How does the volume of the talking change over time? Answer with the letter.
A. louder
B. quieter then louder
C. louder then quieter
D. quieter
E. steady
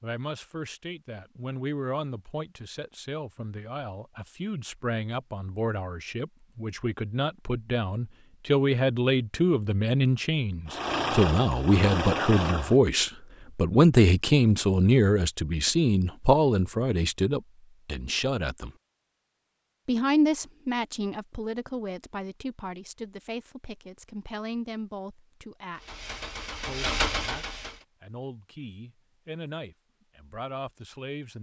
C.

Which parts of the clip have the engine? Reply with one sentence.
You can hear the engine from 10.7 to 12.8 s and from 25.8 to 27.9 s.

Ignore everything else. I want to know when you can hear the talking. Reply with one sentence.
The talking can be heard from 0.0 to 18.7 s, from 19.9 to 25.9 s and from 26.6 to 31.3 s.